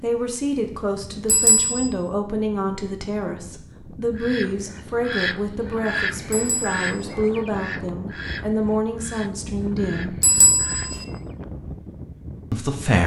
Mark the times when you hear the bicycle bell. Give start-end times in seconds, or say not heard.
1.2-1.9, 6.3-7.2, 10.2-11.1.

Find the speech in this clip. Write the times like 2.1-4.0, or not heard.
0.0-10.2, 12.5-13.0.